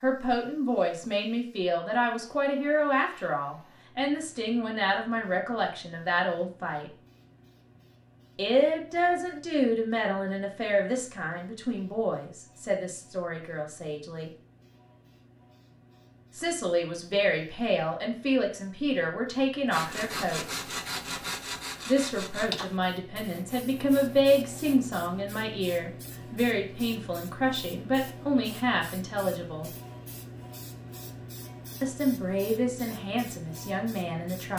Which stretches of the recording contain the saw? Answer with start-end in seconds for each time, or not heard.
19.7-24.9.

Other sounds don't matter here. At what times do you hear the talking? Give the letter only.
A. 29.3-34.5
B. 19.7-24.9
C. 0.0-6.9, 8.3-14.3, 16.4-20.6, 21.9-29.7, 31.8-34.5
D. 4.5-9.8
C.